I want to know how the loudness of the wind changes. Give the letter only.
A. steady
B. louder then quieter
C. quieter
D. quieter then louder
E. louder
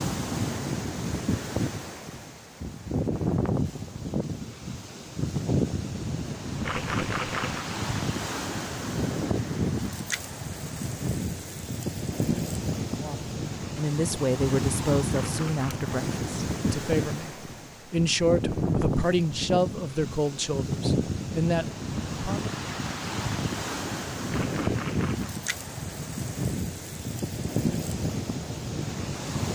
A.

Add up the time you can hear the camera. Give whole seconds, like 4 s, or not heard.
3 s.